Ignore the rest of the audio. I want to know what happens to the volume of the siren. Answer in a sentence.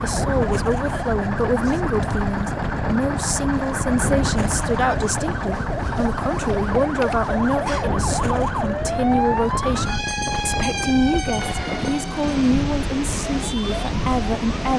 The volume of the siren goes up, then down.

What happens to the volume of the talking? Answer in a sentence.
The volume of the talking stays about the same.